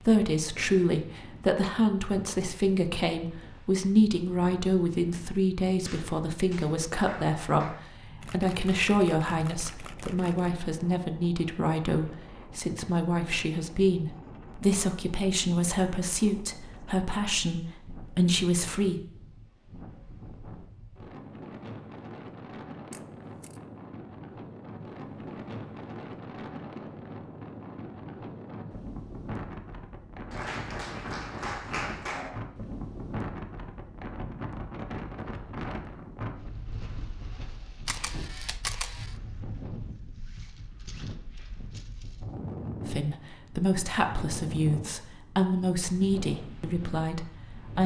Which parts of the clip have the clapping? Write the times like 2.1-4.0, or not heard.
5.8-7.8, 30.3-32.3.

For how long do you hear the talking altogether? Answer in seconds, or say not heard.
24 s.